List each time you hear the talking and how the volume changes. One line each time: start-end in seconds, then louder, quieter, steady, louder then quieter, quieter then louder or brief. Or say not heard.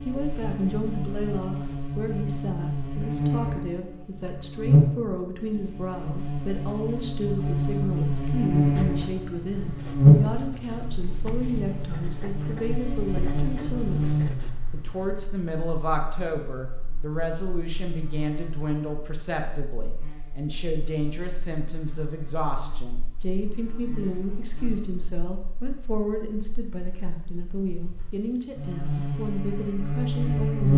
0.0-30.7 steady.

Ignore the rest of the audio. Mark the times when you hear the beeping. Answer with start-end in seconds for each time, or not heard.
not heard.